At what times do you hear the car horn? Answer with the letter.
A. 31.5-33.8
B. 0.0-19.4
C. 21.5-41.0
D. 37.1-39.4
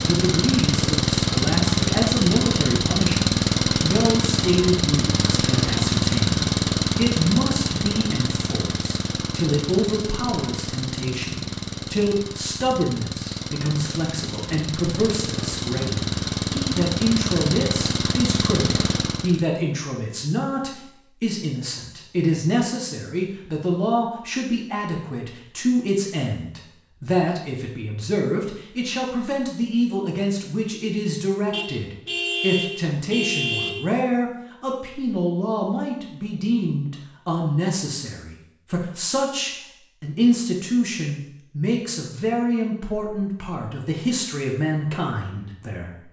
A.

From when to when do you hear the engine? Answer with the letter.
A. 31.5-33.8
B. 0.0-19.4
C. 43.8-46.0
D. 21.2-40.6
B.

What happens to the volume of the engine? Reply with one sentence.
The loudness of the engine goes down, then up.